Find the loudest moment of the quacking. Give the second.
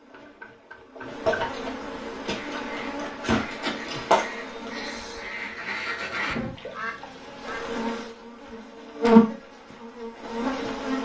6 s.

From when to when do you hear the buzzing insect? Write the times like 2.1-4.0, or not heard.
0.0-11.0.